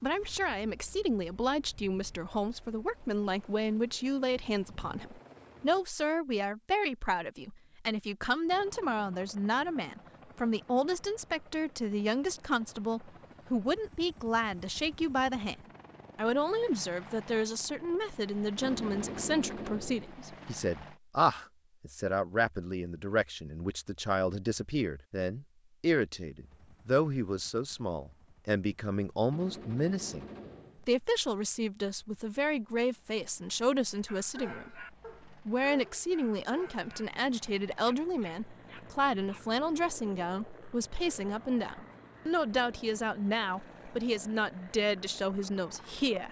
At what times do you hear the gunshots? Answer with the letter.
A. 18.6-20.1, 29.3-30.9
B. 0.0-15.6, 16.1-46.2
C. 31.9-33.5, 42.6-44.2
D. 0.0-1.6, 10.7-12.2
A.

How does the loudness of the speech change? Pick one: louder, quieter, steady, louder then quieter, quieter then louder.
steady.